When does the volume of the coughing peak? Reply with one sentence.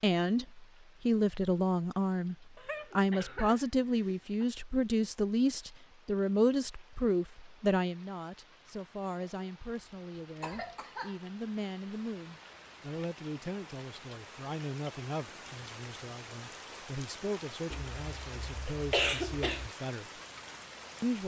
The volume of the coughing peaks at 19 seconds.